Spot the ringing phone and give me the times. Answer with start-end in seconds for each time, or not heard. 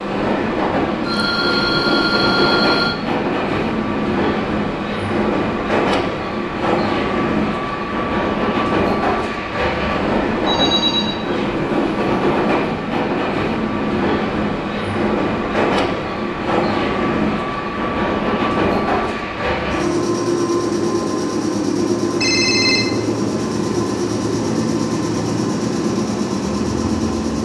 1.1-3.0, 10.3-11.2, 22.2-22.9.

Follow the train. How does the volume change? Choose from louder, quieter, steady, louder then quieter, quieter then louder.
steady.